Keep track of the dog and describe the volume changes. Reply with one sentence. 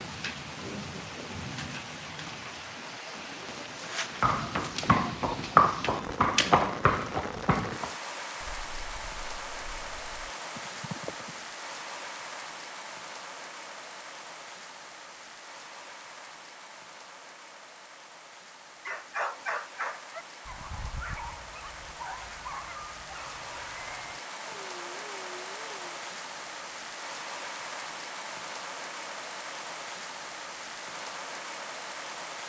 The volume of the dog goes down.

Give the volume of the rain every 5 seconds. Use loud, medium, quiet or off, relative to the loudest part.
loud, loud, loud, medium, loud, loud, loud.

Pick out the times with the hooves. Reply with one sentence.
The hooves can be heard from 4.2 to 11.4 s.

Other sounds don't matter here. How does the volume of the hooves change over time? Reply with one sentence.
The loudness of the hooves goes down, then up.